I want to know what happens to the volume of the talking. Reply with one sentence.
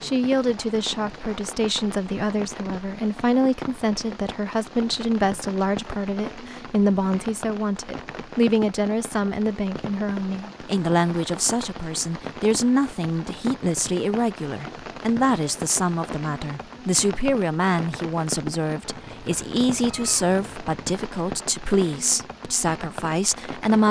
The volume of the talking stays about the same.